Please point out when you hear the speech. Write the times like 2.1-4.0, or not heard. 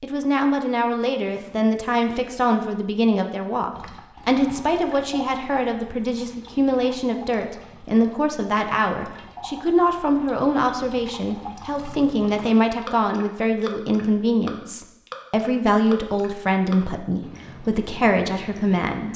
0.0-19.1.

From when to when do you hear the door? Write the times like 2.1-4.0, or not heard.
not heard.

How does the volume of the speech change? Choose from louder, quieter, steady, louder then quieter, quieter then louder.
steady.